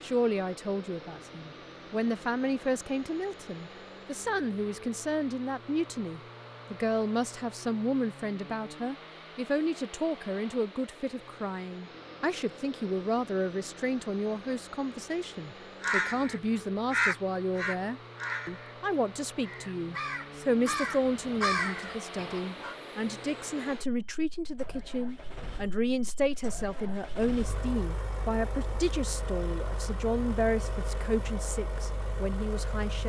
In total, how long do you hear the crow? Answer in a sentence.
You can hear the crow for 7 seconds altogether.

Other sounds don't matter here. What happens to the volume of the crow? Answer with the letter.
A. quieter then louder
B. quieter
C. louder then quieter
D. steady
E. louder
A.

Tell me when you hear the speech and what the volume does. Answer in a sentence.
The speech can be heard from 0.0 to 33.0 s, at a steady volume.